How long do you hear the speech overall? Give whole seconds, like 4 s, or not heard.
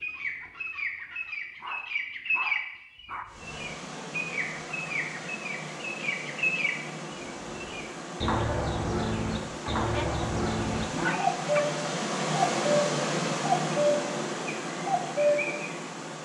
not heard.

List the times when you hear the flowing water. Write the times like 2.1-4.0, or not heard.
3.2-16.2.